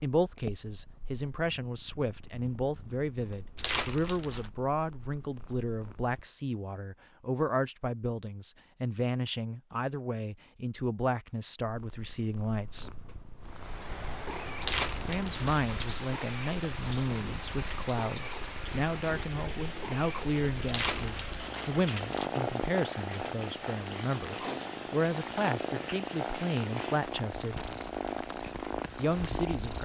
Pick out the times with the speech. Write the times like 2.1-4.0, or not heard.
0.0-12.9, 15.1-27.6, 28.9-29.7.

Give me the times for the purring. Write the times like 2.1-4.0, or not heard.
0.1-6.2, 11.6-29.7.